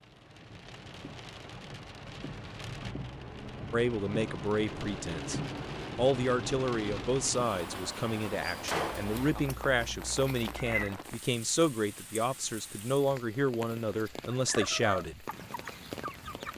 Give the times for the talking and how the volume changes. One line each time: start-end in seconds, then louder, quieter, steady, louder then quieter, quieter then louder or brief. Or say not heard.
3.7-15.2 steady.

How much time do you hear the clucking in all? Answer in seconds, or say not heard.
2 s.